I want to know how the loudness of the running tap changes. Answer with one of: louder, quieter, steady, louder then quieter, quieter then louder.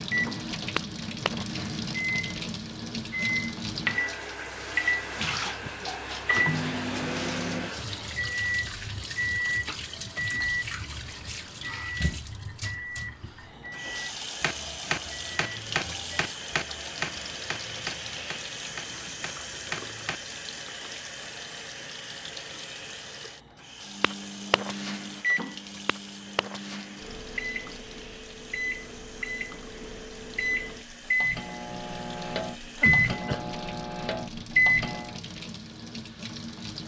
quieter.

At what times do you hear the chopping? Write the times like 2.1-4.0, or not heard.
13.8-20.2.